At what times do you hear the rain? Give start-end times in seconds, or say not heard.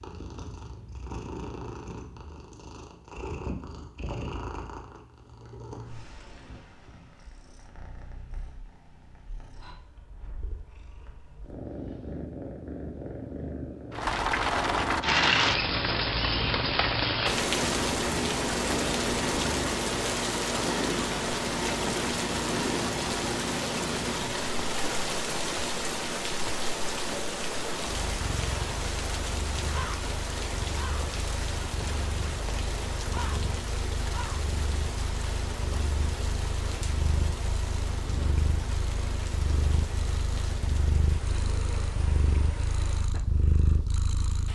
13.9-44.5.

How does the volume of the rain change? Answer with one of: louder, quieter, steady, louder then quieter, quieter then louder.
quieter.